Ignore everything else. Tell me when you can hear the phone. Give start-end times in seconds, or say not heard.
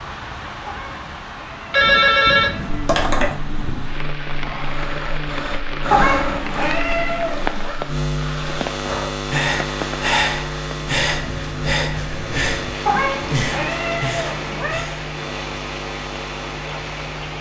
1.7-3.4.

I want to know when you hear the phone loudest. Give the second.
2 s.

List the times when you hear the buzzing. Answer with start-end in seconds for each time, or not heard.
2.6-17.3.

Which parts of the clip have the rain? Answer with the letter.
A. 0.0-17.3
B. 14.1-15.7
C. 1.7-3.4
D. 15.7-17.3
A.